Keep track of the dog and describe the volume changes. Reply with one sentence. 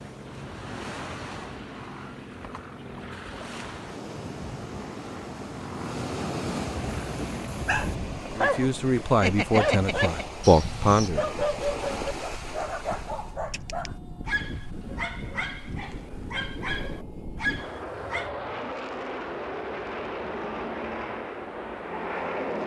The volume of the dog goes down.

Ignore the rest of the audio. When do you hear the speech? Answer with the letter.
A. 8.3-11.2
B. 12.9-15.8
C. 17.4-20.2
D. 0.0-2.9
A.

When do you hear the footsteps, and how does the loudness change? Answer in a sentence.
You can't hear the footsteps here.